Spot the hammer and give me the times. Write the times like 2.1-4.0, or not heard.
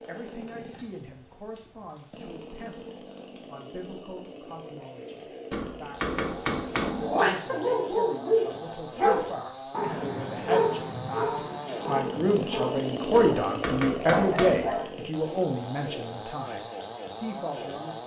5.5-7.2, 13.1-14.8.